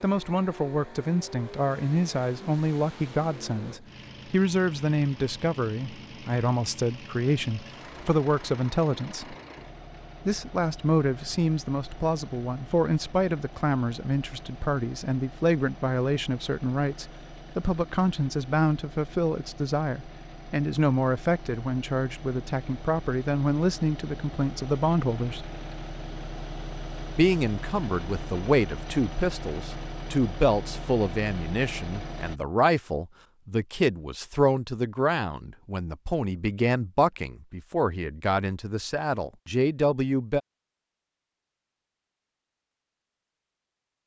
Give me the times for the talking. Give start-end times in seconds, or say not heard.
0.0-9.3, 10.2-25.4, 27.1-40.4.